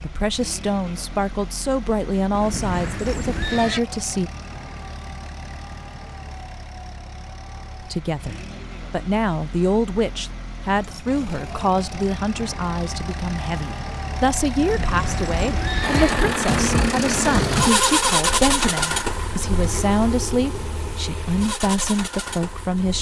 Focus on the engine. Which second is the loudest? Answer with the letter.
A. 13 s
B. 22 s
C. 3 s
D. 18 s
D.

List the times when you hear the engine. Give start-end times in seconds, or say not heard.
0.0-22.9.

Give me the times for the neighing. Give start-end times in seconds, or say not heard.
2.3-3.8, 14.6-16.1.